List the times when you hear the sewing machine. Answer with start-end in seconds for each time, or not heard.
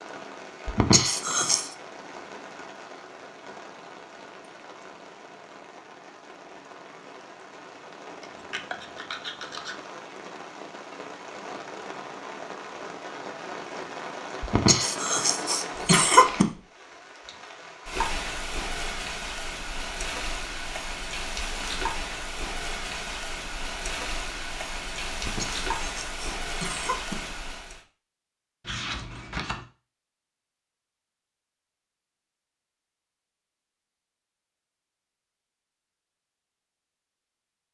not heard.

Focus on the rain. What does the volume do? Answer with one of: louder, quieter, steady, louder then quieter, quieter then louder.
louder.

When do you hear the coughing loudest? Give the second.
16 s.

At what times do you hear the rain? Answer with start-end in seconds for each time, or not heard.
0.0-27.8.